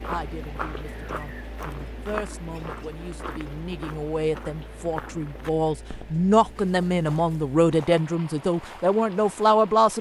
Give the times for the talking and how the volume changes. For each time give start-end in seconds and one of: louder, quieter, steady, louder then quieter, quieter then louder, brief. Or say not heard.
0.1-9.9 louder.